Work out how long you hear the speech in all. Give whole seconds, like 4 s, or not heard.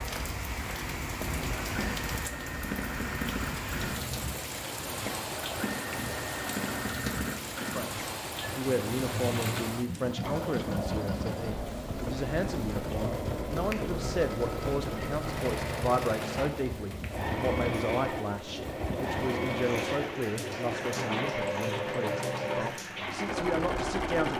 17 s.